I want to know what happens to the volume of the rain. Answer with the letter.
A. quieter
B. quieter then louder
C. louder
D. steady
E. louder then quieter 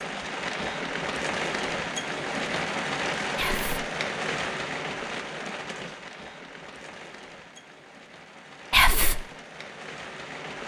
A.